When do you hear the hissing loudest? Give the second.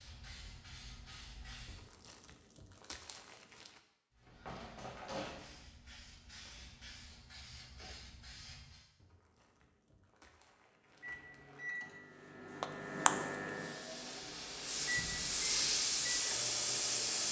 16 s.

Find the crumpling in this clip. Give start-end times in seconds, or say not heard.
1.6-3.8, 9.0-11.8.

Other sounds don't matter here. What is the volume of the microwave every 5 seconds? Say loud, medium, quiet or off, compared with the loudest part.
off, off, loud, medium.